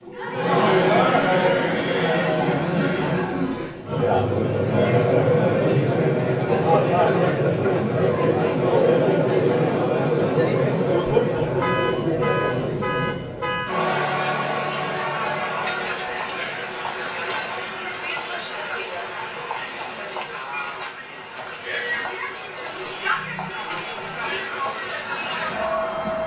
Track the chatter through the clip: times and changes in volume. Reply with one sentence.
You can hear the chatter from 0.1 to 26.2 s, getting quieter.